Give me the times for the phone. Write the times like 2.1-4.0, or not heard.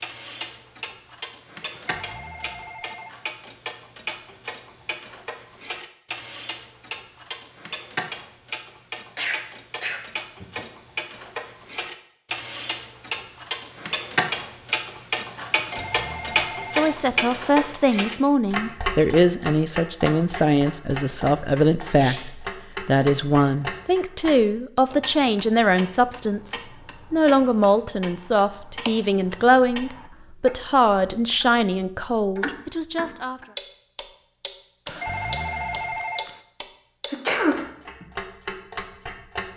1.7-3.3, 15.6-16.9, 34.9-36.4.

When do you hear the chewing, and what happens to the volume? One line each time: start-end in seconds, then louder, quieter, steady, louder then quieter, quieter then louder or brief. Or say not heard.
not heard.